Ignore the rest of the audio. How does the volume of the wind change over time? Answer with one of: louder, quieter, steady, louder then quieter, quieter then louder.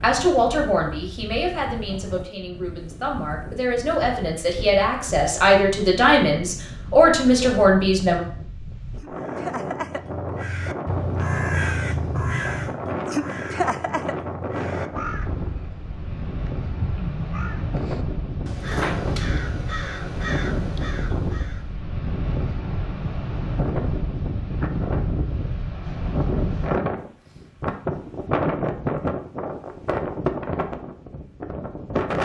louder.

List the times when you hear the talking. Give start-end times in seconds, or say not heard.
0.0-8.2.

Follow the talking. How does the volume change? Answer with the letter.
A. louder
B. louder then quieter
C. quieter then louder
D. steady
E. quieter
C.